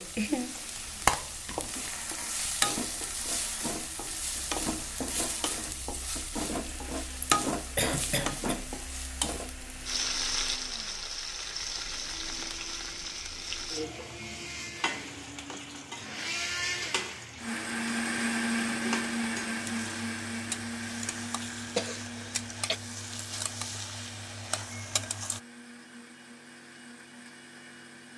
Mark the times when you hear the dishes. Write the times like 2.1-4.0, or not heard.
not heard.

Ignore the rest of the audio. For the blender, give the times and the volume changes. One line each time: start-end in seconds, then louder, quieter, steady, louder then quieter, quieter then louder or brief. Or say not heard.
0.2-28.1 louder then quieter.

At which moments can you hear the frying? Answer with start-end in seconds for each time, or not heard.
0.0-25.4.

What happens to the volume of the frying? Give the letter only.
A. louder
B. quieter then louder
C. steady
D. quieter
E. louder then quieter
D.